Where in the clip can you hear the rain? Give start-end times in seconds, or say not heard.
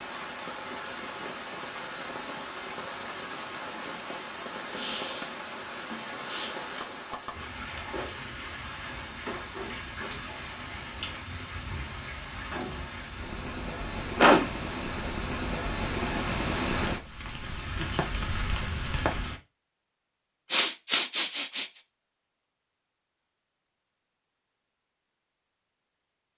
0.0-19.4.